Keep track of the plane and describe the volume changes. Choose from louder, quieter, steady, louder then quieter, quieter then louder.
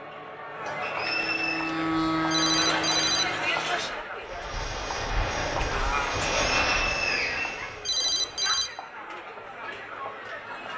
quieter then louder.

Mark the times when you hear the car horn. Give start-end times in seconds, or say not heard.
not heard.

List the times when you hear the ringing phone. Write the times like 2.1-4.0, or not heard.
2.3-3.2, 7.8-8.7.